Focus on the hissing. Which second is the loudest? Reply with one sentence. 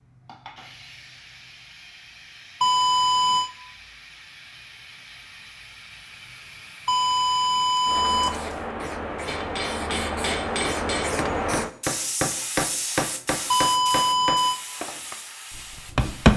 The loudest moment of the hissing is at 11 seconds.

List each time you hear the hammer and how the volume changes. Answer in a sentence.
The hammer can be heard from 9.2 to 16.3 s, getting louder then quieter.